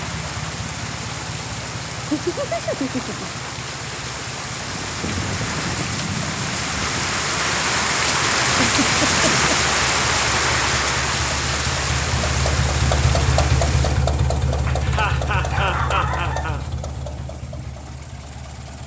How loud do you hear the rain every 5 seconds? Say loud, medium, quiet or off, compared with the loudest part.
medium, loud, loud, off.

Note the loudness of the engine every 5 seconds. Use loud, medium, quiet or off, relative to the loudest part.
medium, medium, loud, medium.